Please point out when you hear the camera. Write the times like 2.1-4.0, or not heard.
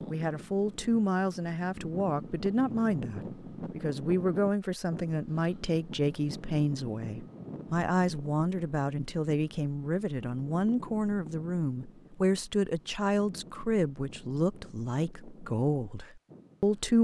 not heard.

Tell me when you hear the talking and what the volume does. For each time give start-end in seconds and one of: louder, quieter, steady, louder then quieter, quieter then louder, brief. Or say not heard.
0.1-16.9 steady.